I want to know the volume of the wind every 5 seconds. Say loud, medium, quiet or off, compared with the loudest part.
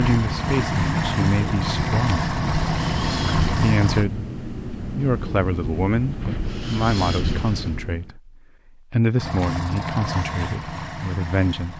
loud, loud, off.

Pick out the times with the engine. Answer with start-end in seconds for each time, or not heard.
0.0-4.0, 9.2-11.7.